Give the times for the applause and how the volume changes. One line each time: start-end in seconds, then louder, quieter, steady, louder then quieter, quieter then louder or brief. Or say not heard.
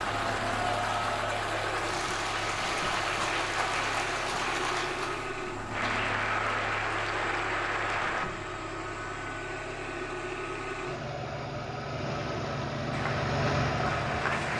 0.0-8.3 steady
12.9-14.5 brief.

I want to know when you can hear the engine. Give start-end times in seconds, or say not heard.
0.0-14.5.